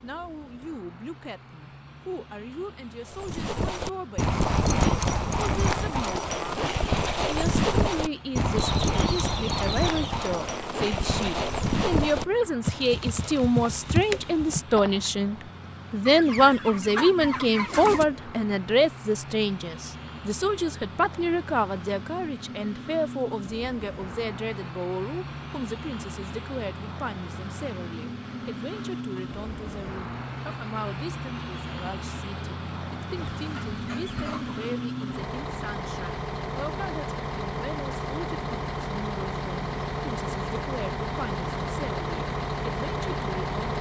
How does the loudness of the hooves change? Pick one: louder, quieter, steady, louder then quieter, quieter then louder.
steady.